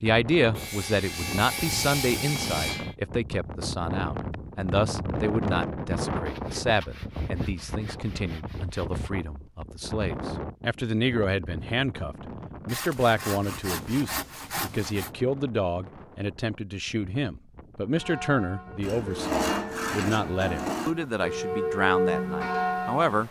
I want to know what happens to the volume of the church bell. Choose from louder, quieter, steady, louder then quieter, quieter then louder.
louder.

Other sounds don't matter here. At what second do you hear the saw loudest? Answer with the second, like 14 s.
19 s.